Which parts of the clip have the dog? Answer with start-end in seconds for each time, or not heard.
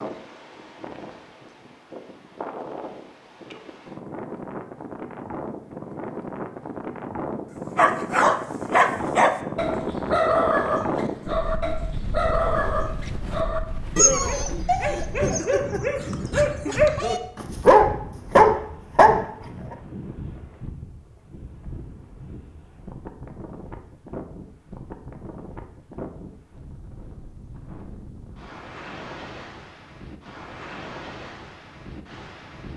7.8-19.2.